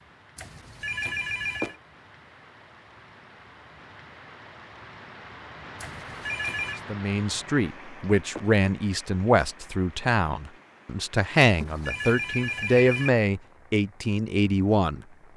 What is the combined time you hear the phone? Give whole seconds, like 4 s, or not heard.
4 s.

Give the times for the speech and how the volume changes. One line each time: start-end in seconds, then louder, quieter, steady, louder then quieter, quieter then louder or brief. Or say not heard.
6.8-15.1 steady.